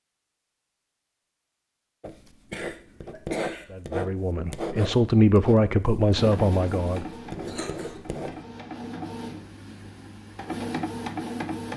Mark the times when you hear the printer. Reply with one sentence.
The printer can be heard from 6.2 to 11.7 s.